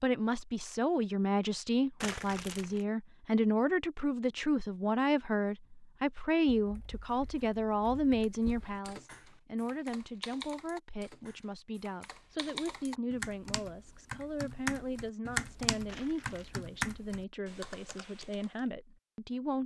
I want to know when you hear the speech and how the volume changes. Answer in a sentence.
The speech can be heard from 0.0 to 19.6 s, getting quieter.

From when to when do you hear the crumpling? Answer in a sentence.
The crumpling can be heard from 2.0 to 2.9 s and from 15.8 to 16.5 s.